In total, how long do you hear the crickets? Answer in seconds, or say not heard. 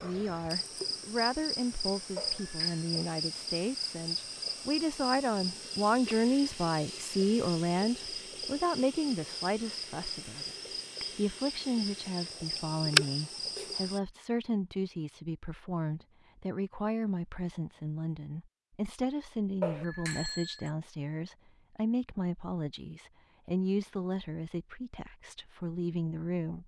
14 s.